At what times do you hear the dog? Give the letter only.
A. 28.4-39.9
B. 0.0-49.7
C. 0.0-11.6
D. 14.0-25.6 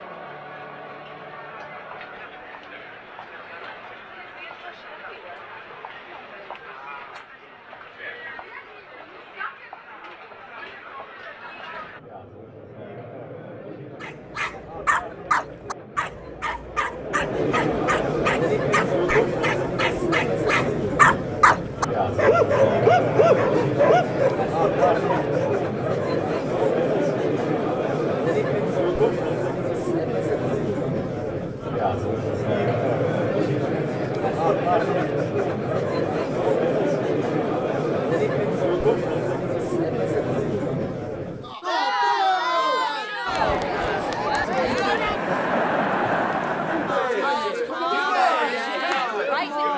D.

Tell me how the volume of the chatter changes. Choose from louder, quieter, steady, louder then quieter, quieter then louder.
louder.